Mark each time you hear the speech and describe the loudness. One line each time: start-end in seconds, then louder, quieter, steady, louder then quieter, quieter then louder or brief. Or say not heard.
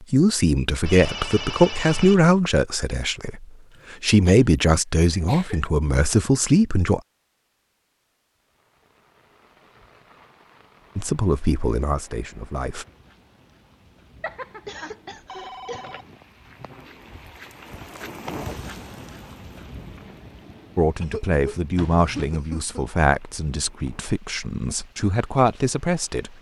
0.1-7.0 quieter then louder
10.9-12.8 brief
20.8-26.3 quieter then louder.